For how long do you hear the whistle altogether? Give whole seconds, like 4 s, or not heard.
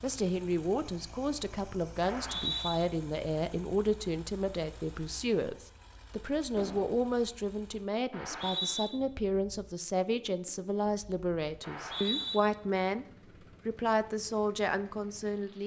2 s.